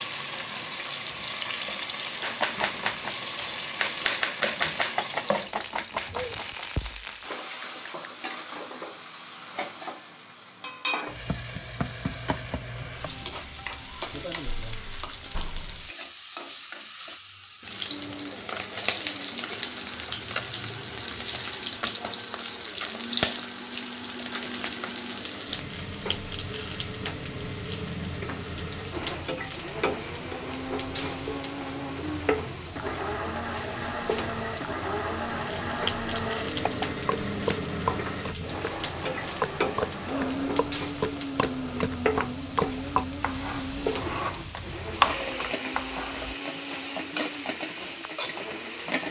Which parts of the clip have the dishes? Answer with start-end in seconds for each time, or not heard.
not heard.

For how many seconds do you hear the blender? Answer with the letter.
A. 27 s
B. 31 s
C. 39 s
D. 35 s
B.